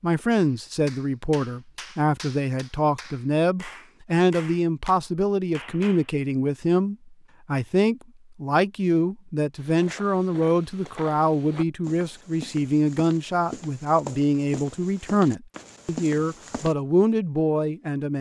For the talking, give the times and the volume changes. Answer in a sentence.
You can hear the talking from 0.0 to 18.1 s, at a steady volume.